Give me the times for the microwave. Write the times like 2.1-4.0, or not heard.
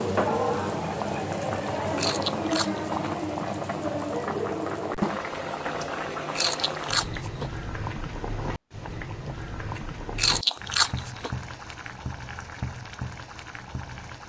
not heard.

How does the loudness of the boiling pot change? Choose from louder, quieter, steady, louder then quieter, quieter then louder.
quieter.